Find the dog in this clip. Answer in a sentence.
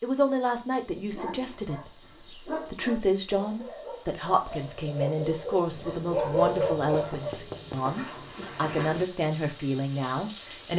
The dog can be heard from 1.1 to 9.1 s.